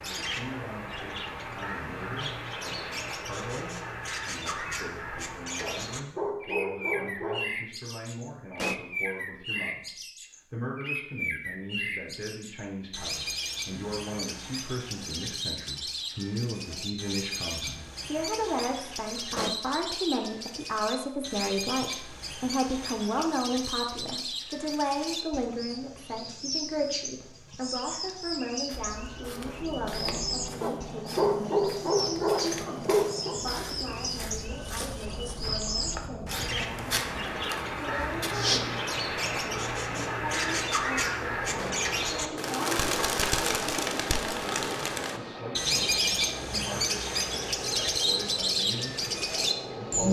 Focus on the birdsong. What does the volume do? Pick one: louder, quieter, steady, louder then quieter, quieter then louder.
louder.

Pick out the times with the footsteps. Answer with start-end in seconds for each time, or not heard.
28.6-38.6.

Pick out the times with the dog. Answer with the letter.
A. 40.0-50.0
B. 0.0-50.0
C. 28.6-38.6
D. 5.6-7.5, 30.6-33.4
D.